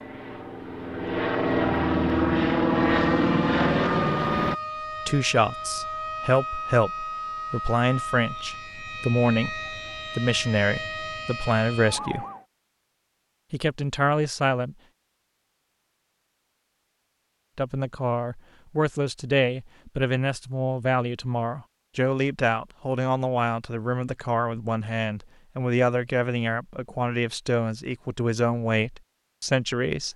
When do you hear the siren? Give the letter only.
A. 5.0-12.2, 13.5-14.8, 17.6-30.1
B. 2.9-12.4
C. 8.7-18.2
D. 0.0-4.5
B.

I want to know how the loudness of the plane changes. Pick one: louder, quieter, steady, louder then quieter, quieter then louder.
louder.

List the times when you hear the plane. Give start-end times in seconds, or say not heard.
0.0-4.5.